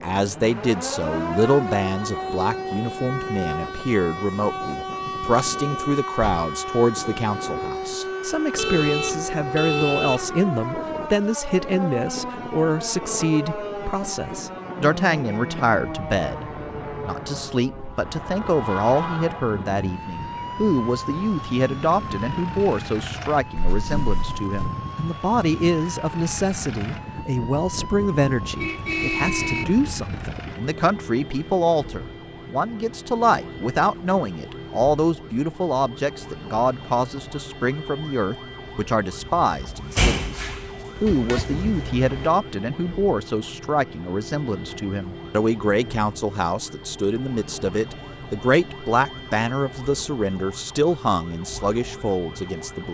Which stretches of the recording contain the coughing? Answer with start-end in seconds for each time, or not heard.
not heard.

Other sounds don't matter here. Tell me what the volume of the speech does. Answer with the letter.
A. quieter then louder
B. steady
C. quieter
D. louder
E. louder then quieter
B.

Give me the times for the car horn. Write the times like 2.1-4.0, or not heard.
8.6-10.4, 28.6-29.6, 41.0-42.3.